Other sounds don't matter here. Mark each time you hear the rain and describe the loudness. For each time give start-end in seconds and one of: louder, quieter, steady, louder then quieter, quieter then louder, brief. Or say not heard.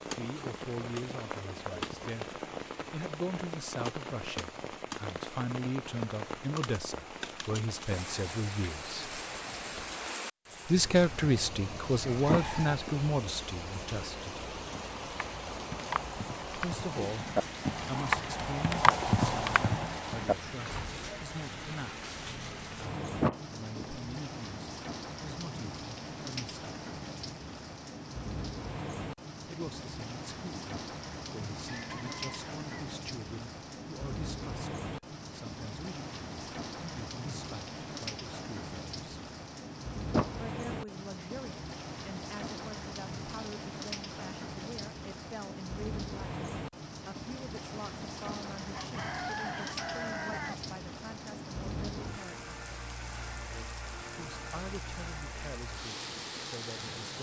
0.0-57.1 steady.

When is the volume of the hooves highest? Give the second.
19 s.